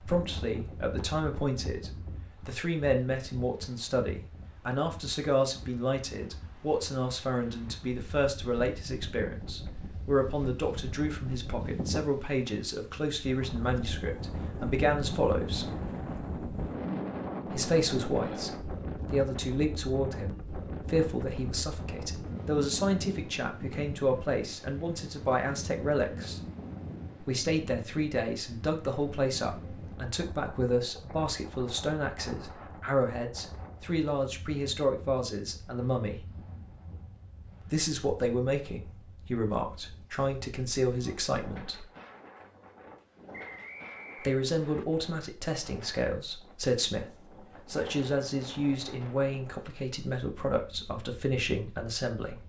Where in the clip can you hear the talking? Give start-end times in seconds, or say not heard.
0.0-15.7, 17.4-26.4, 27.2-36.2, 37.7-41.9, 44.2-52.4.